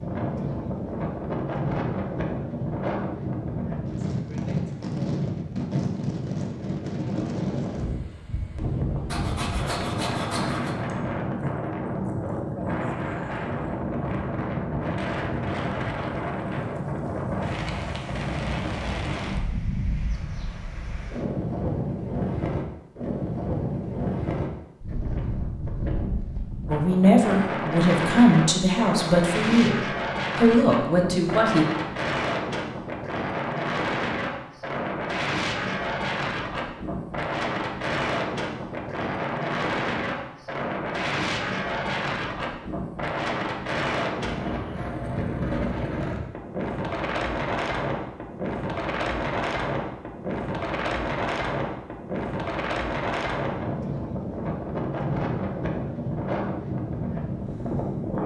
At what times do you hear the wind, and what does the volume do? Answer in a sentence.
You can hear the wind from 0.0 to 58.2 s, at a steady volume.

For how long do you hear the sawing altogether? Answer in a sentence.
The sawing can be heard for 2 seconds in total.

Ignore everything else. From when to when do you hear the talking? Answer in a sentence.
The talking can be heard from 26.6 to 29.8 s and from 30.4 to 31.6 s.